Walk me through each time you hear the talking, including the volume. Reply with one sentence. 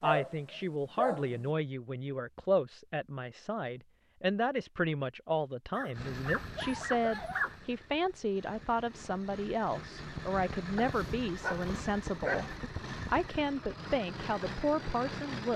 You can hear the talking from 0.0 to 15.5 s, at a steady volume.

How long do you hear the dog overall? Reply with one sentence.
You can hear the dog for 5 seconds altogether.